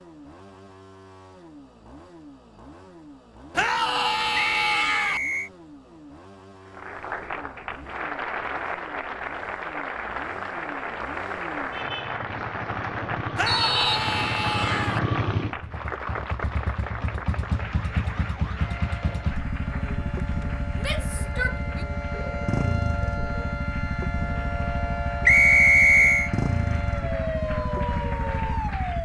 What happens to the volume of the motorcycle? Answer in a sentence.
The loudness of the motorcycle goes up.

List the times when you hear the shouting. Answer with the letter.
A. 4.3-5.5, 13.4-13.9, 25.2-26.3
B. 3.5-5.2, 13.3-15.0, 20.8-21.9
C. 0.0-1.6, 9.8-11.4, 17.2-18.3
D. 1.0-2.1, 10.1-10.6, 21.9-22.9
B.